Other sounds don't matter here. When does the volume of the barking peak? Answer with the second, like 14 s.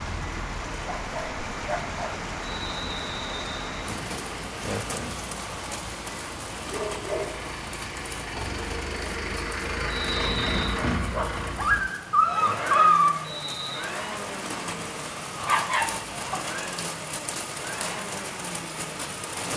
13 s.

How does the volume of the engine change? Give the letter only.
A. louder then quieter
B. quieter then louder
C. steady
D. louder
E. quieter
A.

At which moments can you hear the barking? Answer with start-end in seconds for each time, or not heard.
0.7-2.1, 6.7-7.5, 11.1-13.1, 15.4-16.4.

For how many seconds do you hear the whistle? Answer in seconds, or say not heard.
3 s.